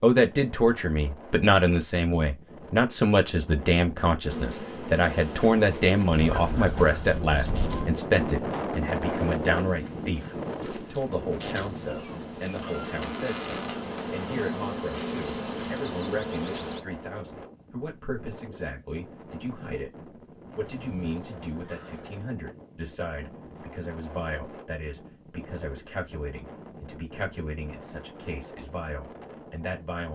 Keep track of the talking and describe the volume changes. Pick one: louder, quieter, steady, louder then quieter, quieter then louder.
quieter.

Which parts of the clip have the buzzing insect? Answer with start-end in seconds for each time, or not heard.
4.2-16.8.